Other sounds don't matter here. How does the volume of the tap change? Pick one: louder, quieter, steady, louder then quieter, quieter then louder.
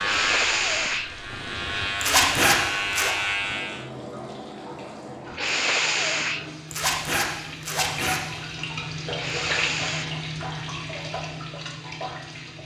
louder.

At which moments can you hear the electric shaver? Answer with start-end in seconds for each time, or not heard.
0.0-3.9.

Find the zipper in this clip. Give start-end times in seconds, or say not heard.
2.0-3.1, 6.7-8.2.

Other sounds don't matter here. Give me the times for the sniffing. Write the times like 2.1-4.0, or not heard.
0.0-1.1, 5.3-6.5, 9.2-10.1.